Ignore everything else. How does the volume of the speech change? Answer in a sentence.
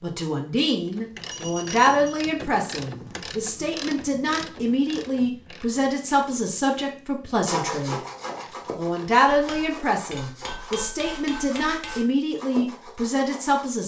The volume of the speech stays about the same.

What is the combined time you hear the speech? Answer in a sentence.
The speech can be heard for 13 seconds in total.